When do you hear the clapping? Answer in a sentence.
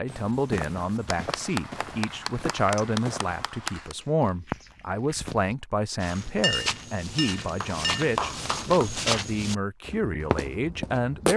The clapping can be heard from 1.1 to 4.0 s and from 7.6 to 9.1 s.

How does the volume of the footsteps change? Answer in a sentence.
The volume of the footsteps goes up.